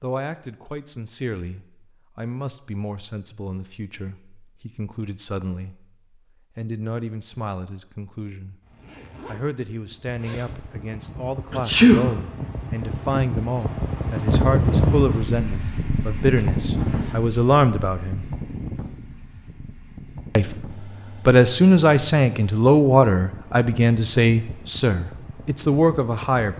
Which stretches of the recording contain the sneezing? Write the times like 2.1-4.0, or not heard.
11.5-12.2.